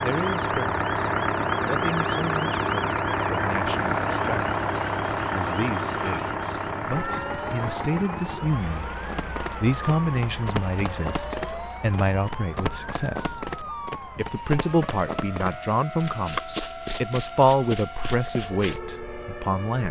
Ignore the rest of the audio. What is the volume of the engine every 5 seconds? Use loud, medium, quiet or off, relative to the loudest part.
loud, medium, quiet, quiet.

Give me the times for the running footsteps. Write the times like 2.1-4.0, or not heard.
9.1-18.9.